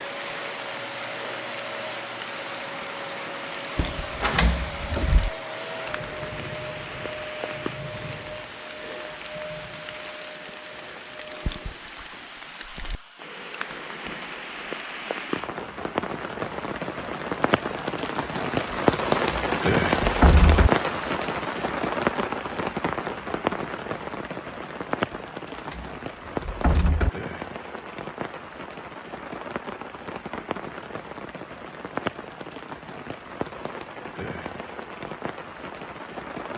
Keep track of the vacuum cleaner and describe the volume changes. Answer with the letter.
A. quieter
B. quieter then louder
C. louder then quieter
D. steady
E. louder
A.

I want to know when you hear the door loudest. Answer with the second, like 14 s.
20 s.